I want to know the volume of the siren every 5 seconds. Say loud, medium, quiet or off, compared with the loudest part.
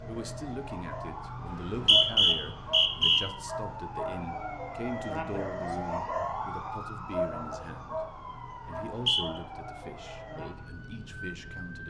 loud, loud, medium.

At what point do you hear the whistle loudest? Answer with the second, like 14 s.
2 s.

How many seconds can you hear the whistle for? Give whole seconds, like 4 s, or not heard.
2 s.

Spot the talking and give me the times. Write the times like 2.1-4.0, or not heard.
0.1-11.8.